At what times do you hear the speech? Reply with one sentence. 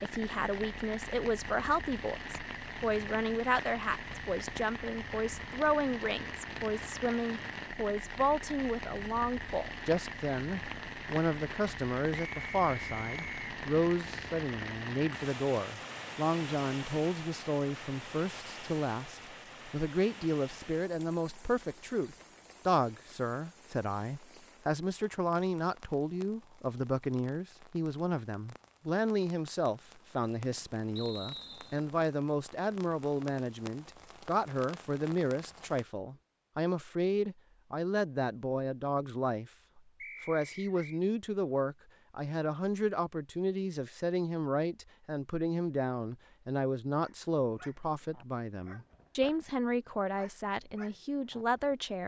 The speech can be heard from 0.0 to 52.0 s.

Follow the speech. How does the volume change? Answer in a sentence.
The loudness of the speech stays about the same.